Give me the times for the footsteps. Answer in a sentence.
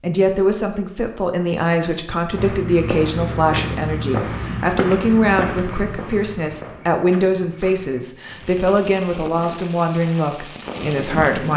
The footsteps can be heard from 2.3 to 10.8 s.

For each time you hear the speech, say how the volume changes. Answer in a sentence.
You can hear the speech from 0.0 to 11.5 s, at a steady volume.